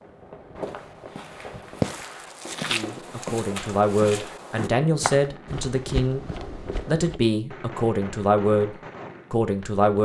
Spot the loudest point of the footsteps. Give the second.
2 s.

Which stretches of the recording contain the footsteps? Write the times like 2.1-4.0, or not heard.
0.6-7.2.